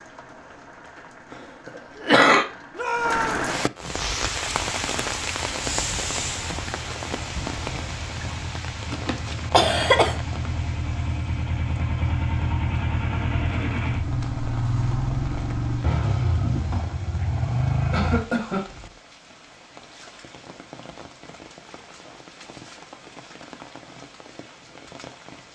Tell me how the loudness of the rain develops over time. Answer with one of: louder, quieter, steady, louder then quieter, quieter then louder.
quieter.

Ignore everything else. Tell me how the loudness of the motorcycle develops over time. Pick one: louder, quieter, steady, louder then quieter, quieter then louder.
louder.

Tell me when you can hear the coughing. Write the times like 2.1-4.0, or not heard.
2.0-2.5, 8.9-10.2, 17.9-18.6.